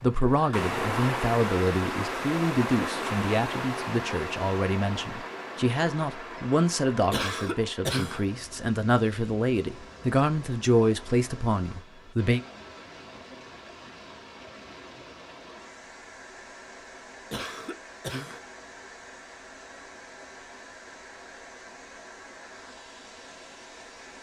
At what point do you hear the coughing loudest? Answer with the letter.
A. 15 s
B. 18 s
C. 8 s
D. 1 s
C.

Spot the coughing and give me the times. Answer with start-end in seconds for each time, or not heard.
7.1-8.2, 17.3-18.4.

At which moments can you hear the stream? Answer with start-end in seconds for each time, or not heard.
0.0-24.1.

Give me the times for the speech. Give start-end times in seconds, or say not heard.
0.0-12.4.